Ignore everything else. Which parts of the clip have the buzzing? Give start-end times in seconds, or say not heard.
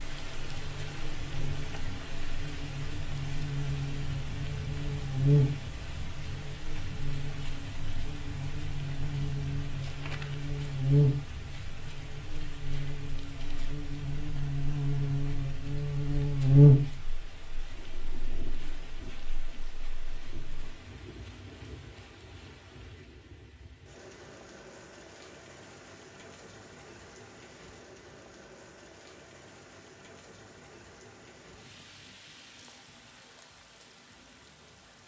0.0-20.8.